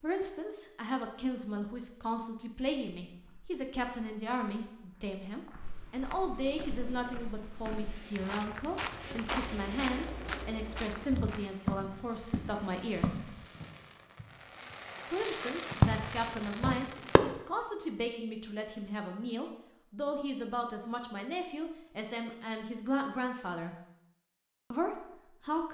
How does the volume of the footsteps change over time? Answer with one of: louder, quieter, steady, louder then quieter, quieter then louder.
louder.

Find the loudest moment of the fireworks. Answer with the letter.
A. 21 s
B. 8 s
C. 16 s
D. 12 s
C.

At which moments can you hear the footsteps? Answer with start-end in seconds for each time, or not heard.
3.0-13.4.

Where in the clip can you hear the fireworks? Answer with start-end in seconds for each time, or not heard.
6.5-17.2.